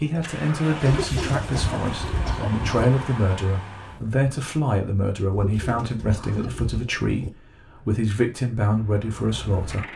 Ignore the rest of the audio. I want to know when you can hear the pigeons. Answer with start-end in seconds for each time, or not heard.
0.8-2.9, 5.3-7.3.